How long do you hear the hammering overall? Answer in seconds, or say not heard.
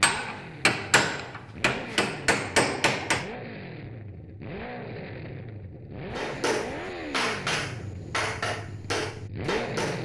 7 s.